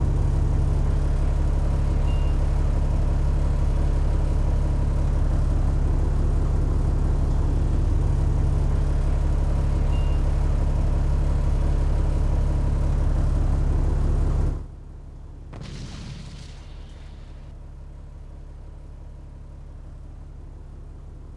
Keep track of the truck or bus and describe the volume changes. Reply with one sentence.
The loudness of the truck or bus goes down.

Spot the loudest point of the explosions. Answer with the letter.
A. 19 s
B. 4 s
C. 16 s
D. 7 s
C.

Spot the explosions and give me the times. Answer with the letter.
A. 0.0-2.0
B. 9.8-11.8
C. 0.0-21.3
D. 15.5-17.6
D.